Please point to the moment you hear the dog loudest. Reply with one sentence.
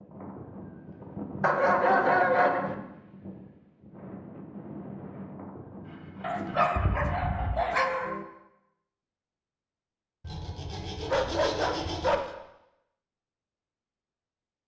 The volume of the dog peaks at 2 seconds.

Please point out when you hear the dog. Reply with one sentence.
The dog can be heard from 1.4 to 2.8 s, from 6.2 to 8.2 s and from 11.1 to 12.3 s.